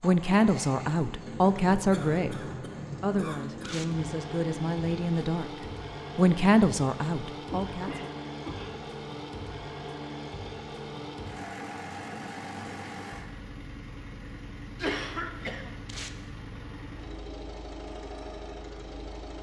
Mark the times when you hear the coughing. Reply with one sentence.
The coughing can be heard from 1.9 to 3.8 s, from 7.5 to 8.8 s and from 14.8 to 15.7 s.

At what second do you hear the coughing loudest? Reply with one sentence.
The volume of the coughing peaks at 15 seconds.